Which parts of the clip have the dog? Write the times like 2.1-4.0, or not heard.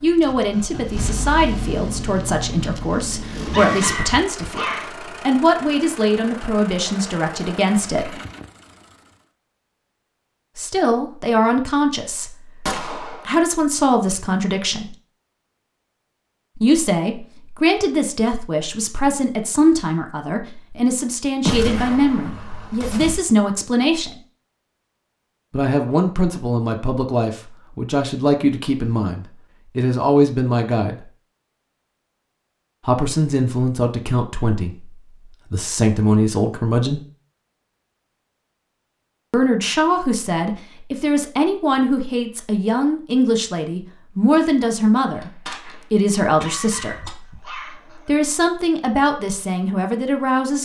3.5-5.1, 46.4-48.1.